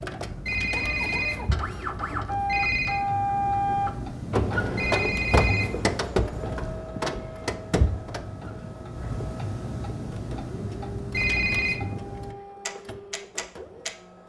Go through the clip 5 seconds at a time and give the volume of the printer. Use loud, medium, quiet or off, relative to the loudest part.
loud, loud, quiet.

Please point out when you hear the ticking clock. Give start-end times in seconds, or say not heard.
0.0-13.9.